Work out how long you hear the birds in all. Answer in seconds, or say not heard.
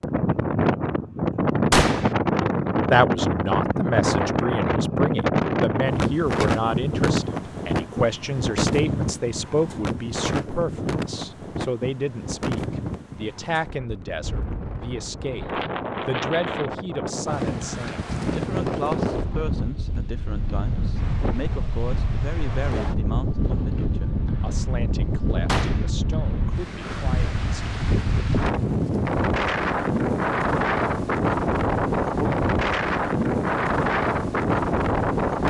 not heard.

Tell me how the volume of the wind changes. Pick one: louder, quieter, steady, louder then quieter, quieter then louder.
quieter then louder.